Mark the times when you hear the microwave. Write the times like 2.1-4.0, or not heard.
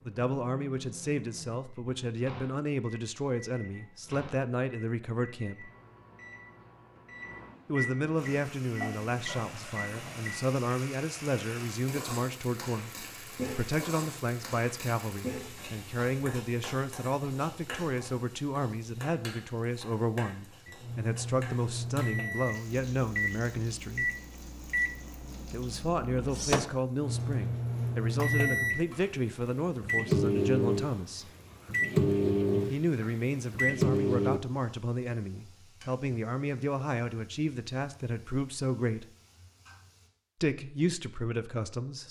0.0-10.5, 20.6-28.9, 29.8-34.4.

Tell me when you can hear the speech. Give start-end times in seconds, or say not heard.
0.1-5.7, 7.7-24.1, 25.5-31.3, 32.6-39.0, 40.4-42.0.